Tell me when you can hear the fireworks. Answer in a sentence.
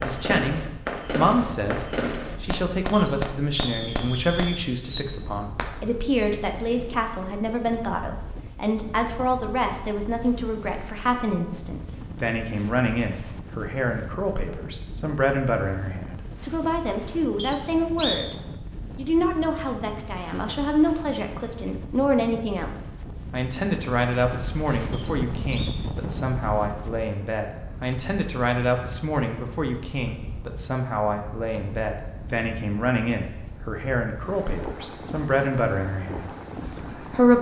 You can hear the fireworks from 0.0 to 6.3 s.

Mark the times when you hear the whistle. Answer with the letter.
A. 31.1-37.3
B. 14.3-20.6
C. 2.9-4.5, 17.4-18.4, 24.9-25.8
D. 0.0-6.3
C.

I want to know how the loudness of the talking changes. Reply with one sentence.
The loudness of the talking stays about the same.